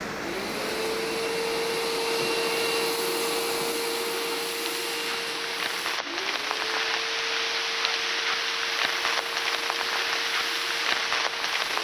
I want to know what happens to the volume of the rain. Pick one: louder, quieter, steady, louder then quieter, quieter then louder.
louder.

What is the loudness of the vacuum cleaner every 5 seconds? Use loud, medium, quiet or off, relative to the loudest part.
loud, medium, medium.